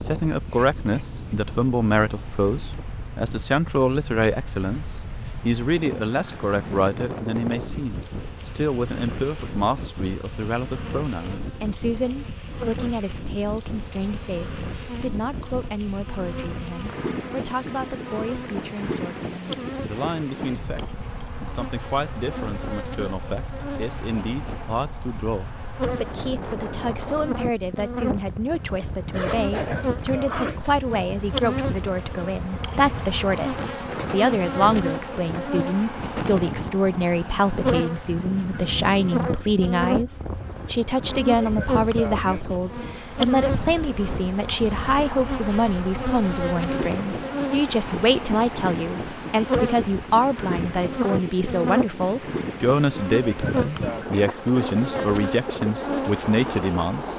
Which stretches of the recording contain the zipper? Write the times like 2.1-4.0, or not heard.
28.7-30.8.